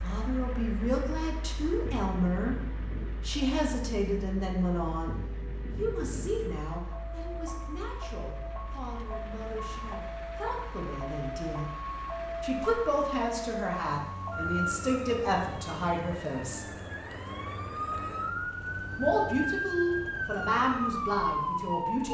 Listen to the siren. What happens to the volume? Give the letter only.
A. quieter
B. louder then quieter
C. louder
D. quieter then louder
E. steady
C.